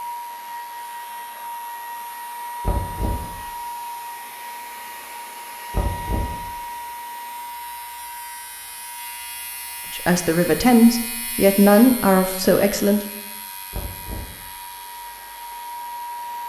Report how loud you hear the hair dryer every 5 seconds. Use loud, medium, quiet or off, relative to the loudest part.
loud, loud, medium, loud.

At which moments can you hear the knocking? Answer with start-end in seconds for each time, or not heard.
2.6-3.4, 5.7-6.5, 13.7-14.4.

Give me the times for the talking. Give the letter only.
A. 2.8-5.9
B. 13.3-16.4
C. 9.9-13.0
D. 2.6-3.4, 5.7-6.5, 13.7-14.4
C.